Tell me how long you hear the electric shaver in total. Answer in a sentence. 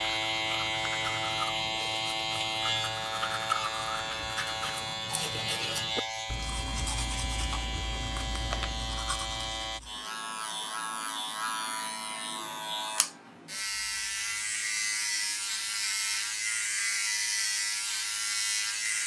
The electric shaver can be heard for 19 seconds in total.